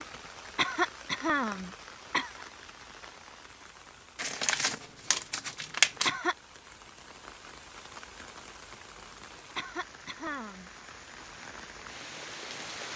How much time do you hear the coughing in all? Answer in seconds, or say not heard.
4 s.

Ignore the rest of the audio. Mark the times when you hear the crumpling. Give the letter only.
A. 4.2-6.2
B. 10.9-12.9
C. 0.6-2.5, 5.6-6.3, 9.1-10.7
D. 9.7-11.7
A.